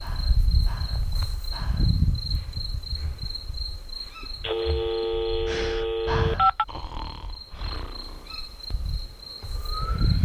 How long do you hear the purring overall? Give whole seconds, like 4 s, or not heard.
not heard.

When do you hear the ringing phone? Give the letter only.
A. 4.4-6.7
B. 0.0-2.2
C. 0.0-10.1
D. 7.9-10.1
A.